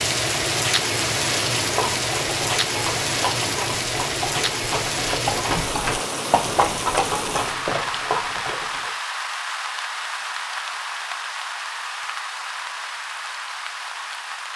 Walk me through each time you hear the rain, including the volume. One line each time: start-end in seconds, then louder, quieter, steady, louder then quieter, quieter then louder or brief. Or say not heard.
0.0-14.5 quieter.